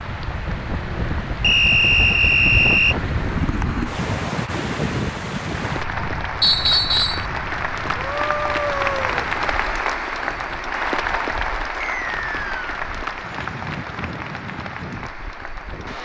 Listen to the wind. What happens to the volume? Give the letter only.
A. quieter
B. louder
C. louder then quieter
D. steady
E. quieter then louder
E.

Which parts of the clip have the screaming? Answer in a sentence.
The screaming can be heard from 8.0 to 9.3 s.